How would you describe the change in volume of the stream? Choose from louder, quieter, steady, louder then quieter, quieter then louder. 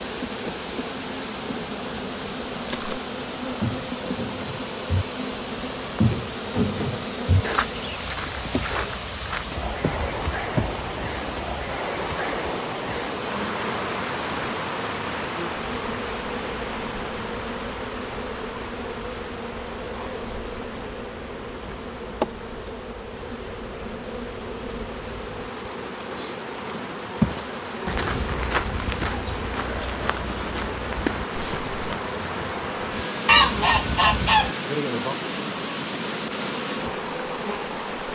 quieter then louder.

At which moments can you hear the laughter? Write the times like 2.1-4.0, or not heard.
not heard.